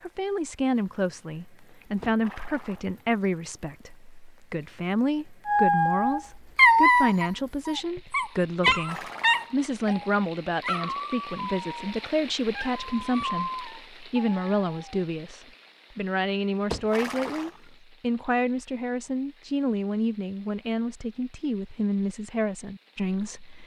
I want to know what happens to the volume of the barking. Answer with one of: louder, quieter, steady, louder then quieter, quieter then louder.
quieter.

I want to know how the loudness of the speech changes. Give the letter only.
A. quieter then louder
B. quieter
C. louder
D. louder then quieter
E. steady
E.